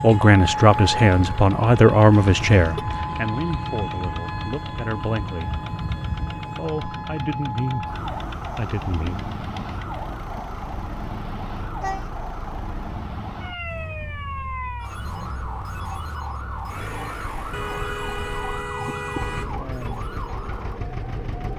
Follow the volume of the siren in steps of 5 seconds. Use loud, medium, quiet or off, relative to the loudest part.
loud, loud, medium, medium, medium.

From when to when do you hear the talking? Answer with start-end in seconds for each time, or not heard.
0.0-5.5, 6.5-9.2.